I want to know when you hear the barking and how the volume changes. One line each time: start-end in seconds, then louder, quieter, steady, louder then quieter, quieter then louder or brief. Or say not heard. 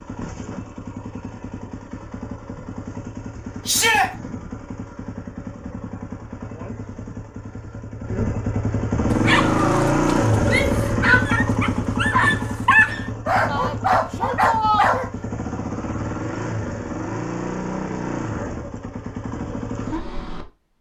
9.1-15.1 louder.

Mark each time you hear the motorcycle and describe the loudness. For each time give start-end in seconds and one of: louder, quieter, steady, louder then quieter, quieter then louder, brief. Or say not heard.
0.0-20.6 louder then quieter.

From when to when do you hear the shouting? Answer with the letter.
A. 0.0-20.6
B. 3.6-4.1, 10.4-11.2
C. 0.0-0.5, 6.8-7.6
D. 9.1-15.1
B.